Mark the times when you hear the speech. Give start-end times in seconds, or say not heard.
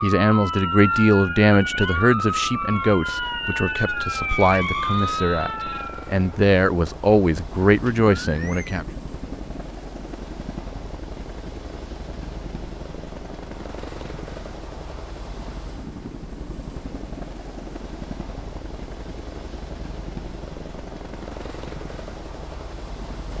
0.0-8.8.